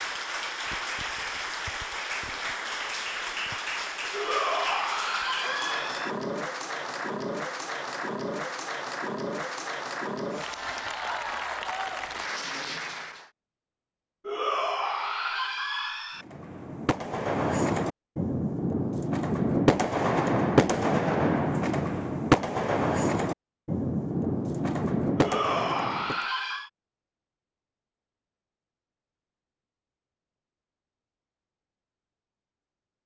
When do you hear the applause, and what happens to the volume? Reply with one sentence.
You can hear the applause from 0.0 to 13.3 s, at a steady volume.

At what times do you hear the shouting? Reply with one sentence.
The shouting can be heard from 4.1 to 6.1 s, from 14.2 to 16.2 s and from 25.1 to 26.7 s.